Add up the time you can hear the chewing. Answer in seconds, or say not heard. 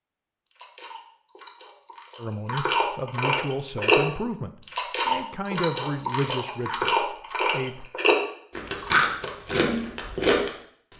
10 s.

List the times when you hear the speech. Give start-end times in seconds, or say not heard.
2.1-7.9.